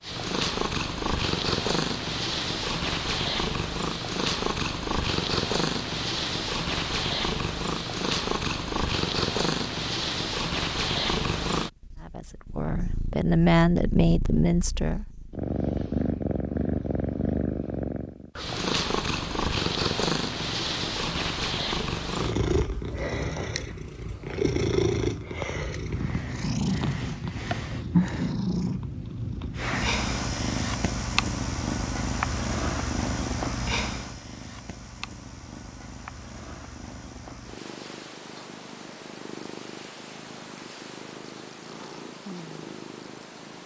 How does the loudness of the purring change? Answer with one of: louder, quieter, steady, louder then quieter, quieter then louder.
quieter.